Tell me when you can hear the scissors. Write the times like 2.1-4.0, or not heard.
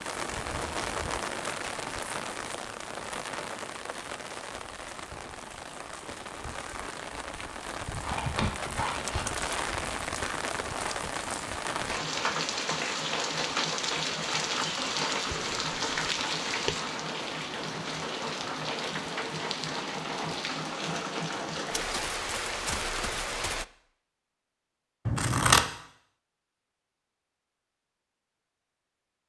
8.0-9.4, 25.1-25.6.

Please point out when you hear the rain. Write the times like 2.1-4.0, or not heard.
0.0-23.6.